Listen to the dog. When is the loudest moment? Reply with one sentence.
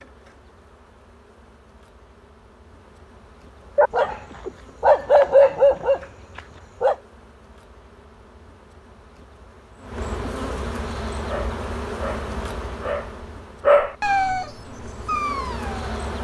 The loudest moment of the dog is at 5 seconds.